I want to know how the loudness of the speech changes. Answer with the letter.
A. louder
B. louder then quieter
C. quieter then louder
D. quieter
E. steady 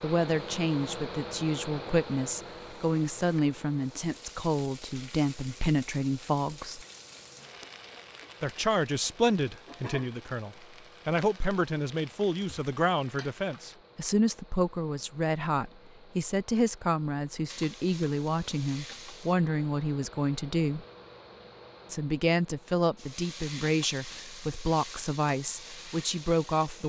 E.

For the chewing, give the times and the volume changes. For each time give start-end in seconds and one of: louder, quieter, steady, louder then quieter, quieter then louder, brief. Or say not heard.
not heard.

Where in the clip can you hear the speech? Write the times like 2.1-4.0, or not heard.
0.0-6.8, 8.4-20.9, 21.9-26.8.